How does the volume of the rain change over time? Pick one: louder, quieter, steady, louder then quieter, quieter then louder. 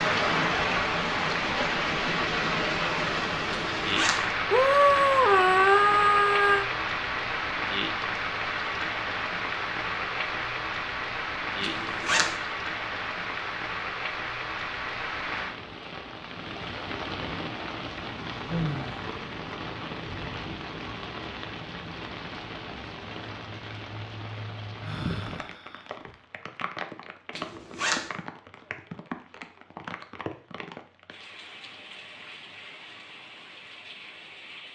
quieter.